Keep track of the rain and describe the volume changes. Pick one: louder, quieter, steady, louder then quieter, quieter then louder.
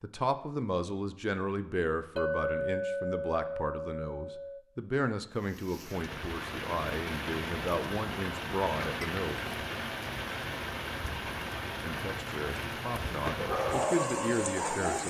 steady.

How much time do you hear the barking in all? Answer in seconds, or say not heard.
2 s.